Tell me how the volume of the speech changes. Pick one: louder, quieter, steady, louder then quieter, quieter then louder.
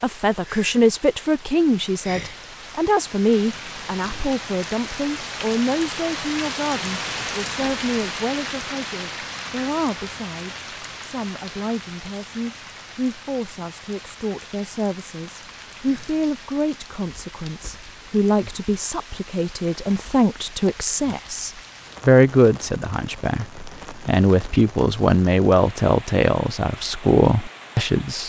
quieter then louder.